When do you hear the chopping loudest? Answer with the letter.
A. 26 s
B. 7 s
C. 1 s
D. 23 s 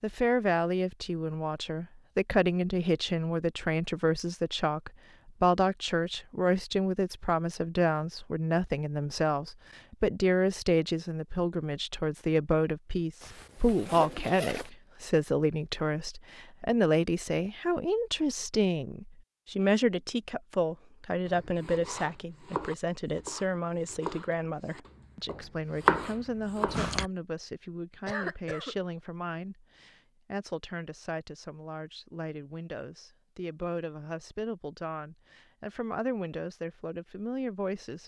A.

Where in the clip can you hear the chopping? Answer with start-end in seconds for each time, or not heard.
21.2-27.1.